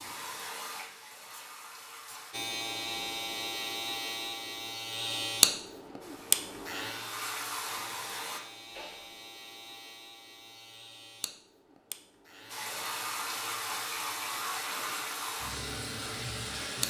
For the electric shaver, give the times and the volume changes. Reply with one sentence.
You can hear the electric shaver from 2.3 to 16.8 s, getting quieter.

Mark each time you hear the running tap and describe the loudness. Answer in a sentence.
The running tap can be heard briefly from 0.0 to 2.4 s; briefly from 6.0 to 8.4 s; and from 12.4 to 16.8 s, at a steady volume.